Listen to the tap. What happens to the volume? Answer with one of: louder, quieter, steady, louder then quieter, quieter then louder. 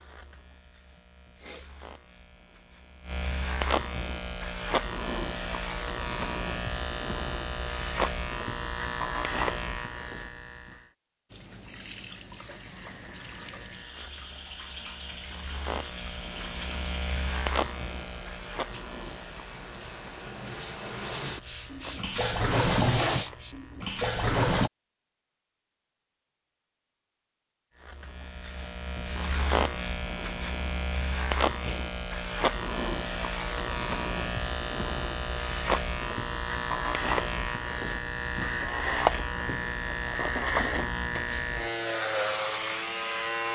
louder.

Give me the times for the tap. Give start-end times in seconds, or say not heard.
11.3-24.7.